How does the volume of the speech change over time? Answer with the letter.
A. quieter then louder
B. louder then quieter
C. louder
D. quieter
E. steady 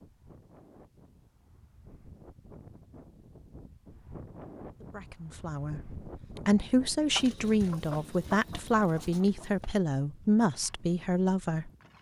E.